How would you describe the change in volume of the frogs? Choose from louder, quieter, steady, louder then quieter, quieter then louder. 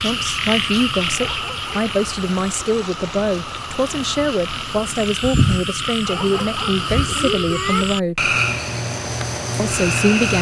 quieter then louder.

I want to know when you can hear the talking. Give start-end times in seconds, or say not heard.
0.0-8.3, 9.6-10.3.